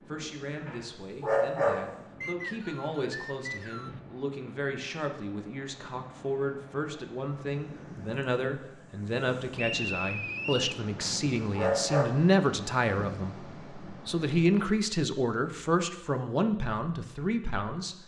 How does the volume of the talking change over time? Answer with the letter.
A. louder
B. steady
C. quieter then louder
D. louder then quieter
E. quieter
A.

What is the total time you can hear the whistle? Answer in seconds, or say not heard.
3 s.